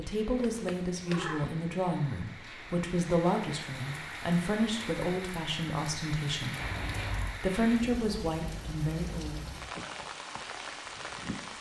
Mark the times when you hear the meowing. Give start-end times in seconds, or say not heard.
0.3-1.5, 6.5-7.5.